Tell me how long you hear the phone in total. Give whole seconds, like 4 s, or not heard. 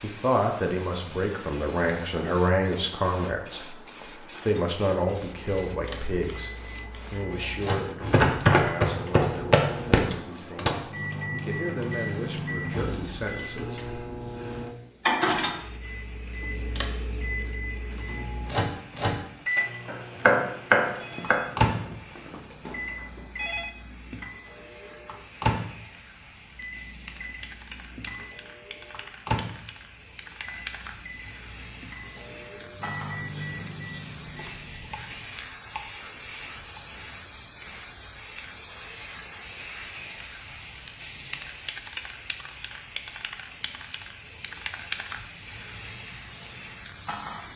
3 s.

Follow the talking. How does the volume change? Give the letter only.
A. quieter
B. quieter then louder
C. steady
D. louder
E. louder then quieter
A.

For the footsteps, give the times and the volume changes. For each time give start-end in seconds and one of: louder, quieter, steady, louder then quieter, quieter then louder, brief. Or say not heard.
not heard.